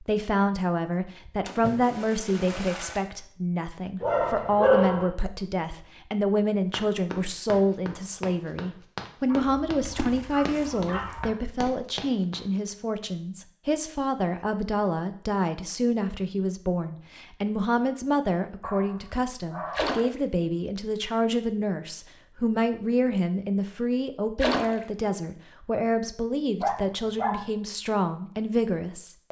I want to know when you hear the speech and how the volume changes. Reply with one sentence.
You can hear the speech from 0.0 to 29.2 s, at a steady volume.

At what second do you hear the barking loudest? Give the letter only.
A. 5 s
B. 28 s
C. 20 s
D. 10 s
A.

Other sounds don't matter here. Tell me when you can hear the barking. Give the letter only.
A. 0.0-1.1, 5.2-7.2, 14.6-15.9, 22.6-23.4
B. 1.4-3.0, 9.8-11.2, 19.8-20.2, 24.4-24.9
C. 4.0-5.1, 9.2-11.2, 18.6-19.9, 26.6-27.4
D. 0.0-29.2
C.